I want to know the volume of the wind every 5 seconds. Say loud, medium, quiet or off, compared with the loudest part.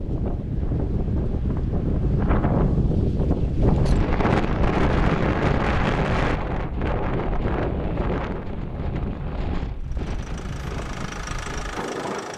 loud, loud, medium.